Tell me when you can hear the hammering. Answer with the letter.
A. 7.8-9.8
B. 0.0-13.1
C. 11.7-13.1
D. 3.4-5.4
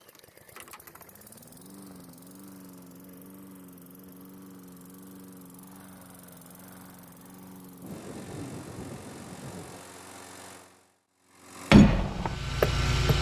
C.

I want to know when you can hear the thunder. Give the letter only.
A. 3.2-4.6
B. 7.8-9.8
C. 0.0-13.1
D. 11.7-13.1
B.